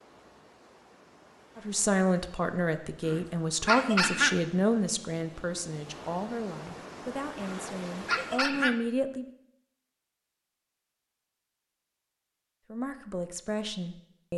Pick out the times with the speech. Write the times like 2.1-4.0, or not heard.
1.6-9.2, 12.7-14.3.